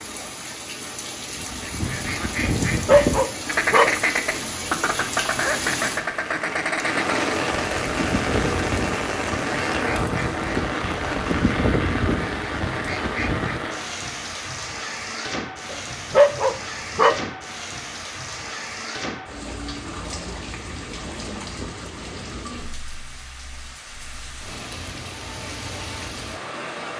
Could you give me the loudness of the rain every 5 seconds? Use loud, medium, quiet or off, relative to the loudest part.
medium, loud, loud, medium, medium, medium.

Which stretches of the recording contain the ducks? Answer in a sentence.
The ducks can be heard from 1.3 to 13.7 s.